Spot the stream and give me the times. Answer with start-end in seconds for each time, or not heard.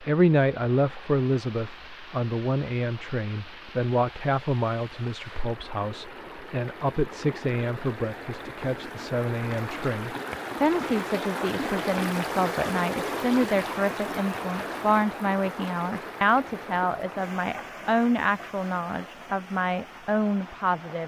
0.0-21.0.